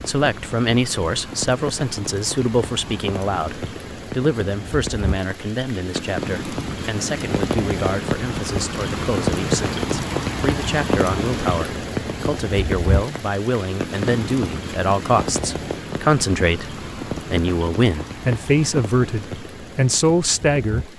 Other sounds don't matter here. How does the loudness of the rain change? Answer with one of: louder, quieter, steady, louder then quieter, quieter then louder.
louder then quieter.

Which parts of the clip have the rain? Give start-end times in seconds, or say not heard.
0.0-20.9.